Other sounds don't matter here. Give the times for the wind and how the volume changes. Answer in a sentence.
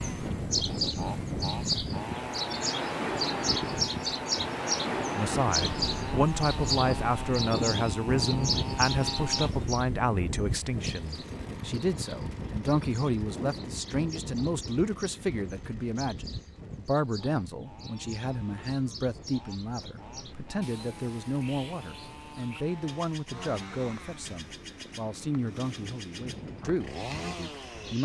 You can hear the wind from 0.0 to 27.9 s, getting quieter.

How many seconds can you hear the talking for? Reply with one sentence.
The talking can be heard for 23 seconds in total.